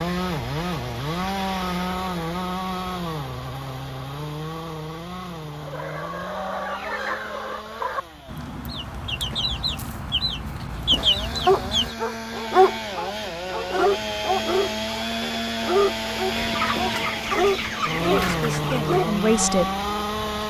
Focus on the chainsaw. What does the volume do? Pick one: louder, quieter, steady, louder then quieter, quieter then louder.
quieter then louder.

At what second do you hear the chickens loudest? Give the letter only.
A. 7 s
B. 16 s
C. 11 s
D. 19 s
C.